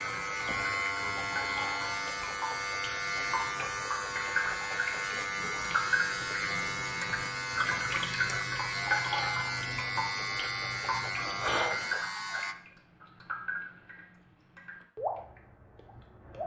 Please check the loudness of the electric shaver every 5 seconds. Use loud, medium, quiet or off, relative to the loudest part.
loud, loud, loud, off.